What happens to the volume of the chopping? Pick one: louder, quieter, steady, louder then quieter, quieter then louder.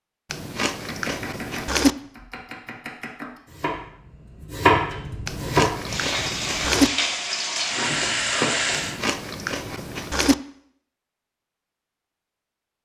louder.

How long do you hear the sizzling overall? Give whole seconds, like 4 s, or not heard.
3 s.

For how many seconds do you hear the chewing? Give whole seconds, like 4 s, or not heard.
5 s.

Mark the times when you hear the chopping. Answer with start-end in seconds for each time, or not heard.
0.8-7.0.